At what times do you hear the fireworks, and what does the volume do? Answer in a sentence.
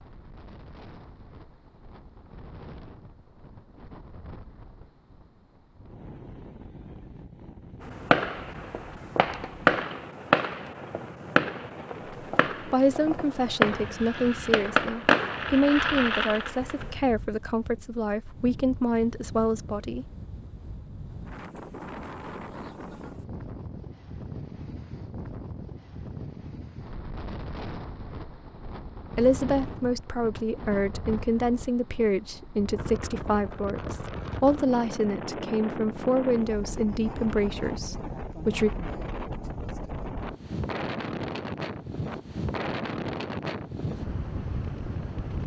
You can hear the fireworks from 7.8 to 16.9 s, getting quieter then louder.